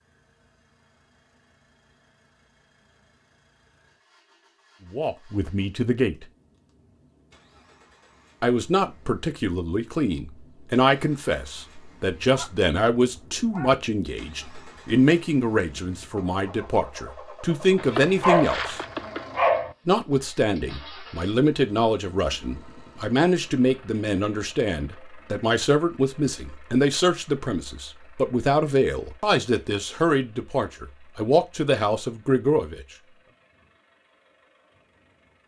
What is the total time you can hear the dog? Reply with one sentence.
You can hear the dog for 4 seconds altogether.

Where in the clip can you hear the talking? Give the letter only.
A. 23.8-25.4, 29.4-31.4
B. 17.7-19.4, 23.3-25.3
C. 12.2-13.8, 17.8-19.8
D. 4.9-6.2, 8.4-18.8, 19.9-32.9
D.